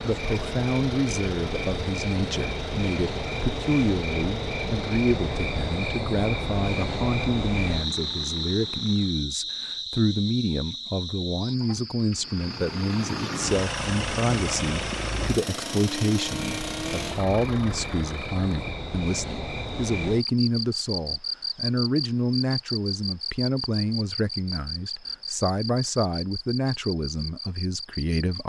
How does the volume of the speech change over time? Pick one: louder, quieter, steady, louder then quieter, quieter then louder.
steady.